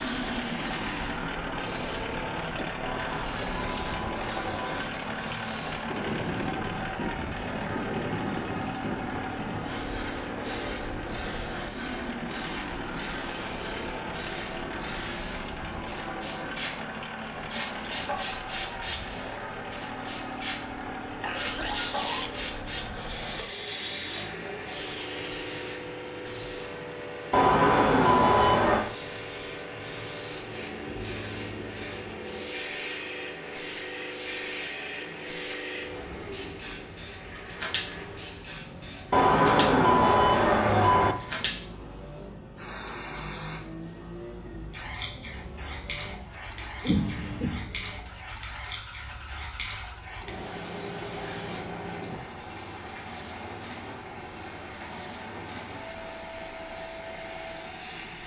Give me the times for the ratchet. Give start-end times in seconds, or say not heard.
not heard.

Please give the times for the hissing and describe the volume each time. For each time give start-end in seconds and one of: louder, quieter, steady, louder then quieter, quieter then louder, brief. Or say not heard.
0.0-58.2 steady.